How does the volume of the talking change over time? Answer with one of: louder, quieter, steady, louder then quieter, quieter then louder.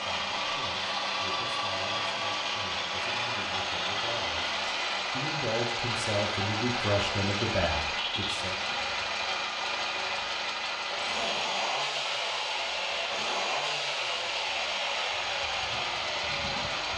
louder.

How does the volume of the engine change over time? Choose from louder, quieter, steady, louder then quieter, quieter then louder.
steady.